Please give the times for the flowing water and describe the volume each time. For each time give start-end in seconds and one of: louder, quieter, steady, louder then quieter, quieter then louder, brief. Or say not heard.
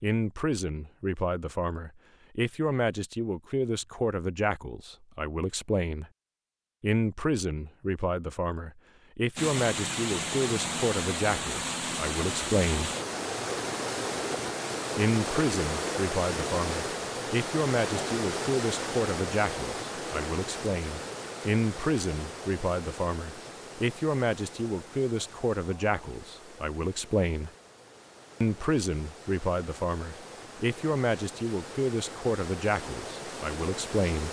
9.3-34.2 quieter then louder.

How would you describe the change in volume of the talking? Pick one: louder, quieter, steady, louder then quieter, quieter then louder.
steady.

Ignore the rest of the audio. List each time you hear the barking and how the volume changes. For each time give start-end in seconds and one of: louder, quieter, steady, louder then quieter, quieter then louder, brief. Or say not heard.
not heard.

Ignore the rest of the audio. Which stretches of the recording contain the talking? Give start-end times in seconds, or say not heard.
0.0-6.1, 6.8-12.9, 14.9-27.5, 28.4-34.2.